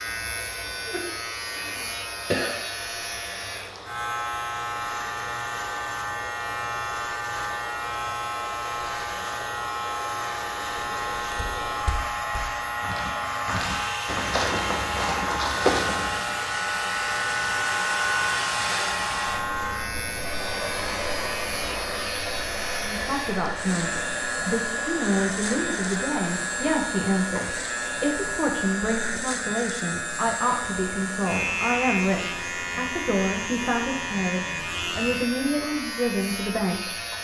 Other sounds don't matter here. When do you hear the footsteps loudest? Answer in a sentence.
The volume of the footsteps peaks at 16 seconds.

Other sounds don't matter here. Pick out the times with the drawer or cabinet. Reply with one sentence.
You can't hear the drawer or cabinet here.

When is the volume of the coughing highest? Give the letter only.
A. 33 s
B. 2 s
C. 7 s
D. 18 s
B.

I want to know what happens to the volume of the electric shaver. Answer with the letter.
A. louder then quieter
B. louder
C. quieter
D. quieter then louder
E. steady
E.